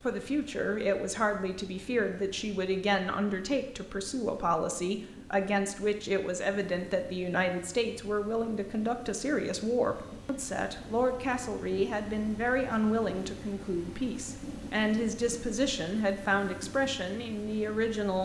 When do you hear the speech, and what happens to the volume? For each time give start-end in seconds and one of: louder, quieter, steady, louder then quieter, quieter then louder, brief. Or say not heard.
0.1-18.2 steady.